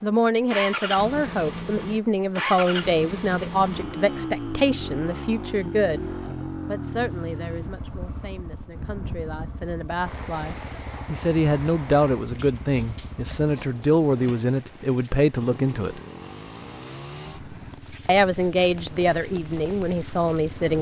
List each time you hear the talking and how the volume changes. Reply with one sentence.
You can hear the talking from 0.0 to 16.0 s, getting quieter then louder; and briefly from 18.1 to 20.7 s.